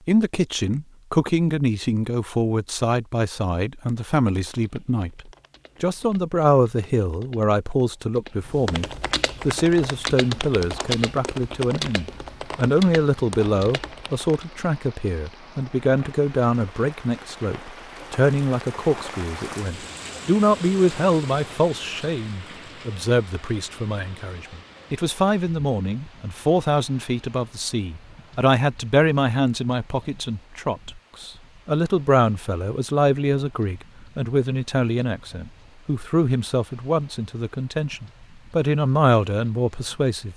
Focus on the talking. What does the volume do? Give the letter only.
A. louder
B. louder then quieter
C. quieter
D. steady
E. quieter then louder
D.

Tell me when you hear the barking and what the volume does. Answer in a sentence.
You can't hear the barking here.